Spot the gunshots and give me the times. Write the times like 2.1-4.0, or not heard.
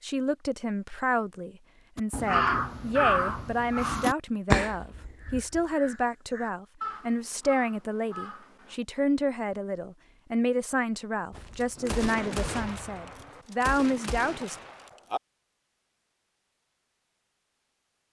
11.3-15.2.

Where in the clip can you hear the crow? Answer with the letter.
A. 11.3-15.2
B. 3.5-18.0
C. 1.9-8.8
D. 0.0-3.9
C.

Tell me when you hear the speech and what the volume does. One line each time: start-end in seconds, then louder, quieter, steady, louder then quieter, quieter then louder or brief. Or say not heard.
0.0-14.6 steady.